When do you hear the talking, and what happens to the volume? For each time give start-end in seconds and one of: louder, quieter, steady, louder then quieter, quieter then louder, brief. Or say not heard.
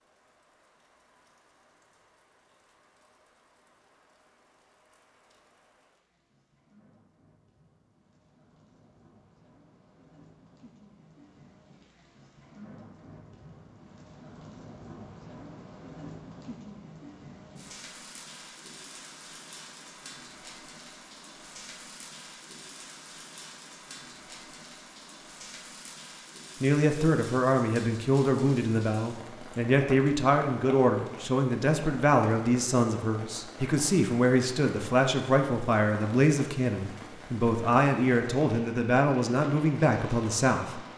26.6-40.8 steady.